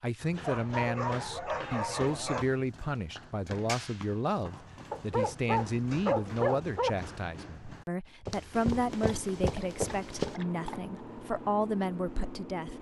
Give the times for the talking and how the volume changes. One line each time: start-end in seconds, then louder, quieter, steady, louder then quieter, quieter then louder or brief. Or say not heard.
0.0-12.7 steady.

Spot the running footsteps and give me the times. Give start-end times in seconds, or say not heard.
0.2-10.3.